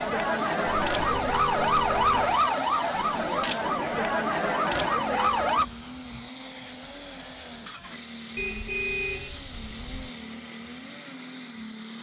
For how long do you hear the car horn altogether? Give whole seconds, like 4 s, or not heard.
5 s.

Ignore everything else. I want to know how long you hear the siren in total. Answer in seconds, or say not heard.
6 s.